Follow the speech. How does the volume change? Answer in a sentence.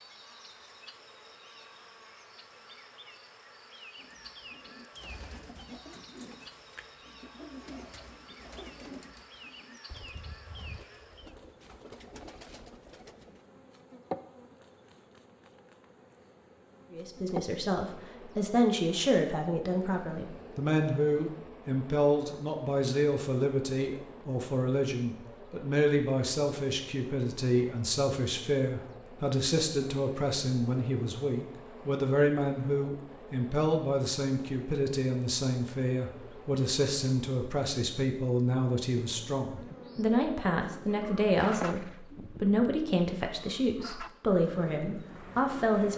The volume of the speech stays about the same.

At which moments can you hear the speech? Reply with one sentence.
You can hear the speech from 16.9 to 45.9 s.